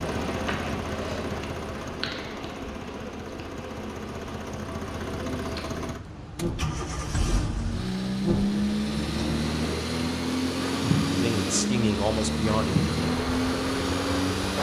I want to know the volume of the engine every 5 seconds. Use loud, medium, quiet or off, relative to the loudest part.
medium, loud, loud.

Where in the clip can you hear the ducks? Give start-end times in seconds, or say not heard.
not heard.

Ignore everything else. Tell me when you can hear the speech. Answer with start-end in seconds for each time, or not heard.
11.2-12.8.